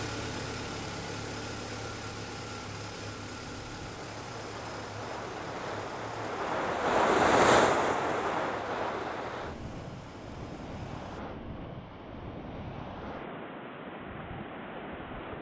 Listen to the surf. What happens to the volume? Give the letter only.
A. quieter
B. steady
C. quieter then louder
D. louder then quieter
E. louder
D.